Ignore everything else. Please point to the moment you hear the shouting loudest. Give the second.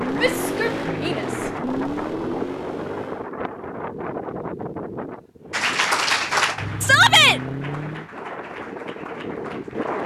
7 s.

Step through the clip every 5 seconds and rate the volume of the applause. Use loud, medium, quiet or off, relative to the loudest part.
medium, loud.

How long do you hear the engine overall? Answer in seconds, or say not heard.
6 s.